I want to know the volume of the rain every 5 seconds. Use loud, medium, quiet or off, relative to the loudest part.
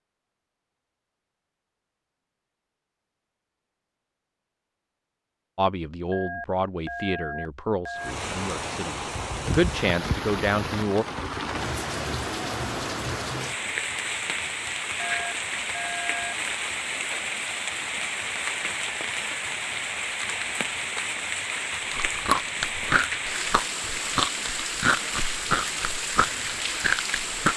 off, loud, loud, loud, loud, loud.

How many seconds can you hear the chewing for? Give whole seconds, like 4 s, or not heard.
6 s.